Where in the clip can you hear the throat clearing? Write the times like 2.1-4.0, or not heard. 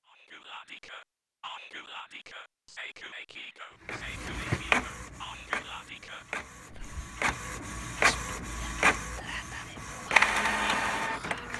not heard.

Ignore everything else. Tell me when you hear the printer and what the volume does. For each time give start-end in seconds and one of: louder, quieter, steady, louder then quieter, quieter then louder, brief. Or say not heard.
3.9-11.5 quieter then louder.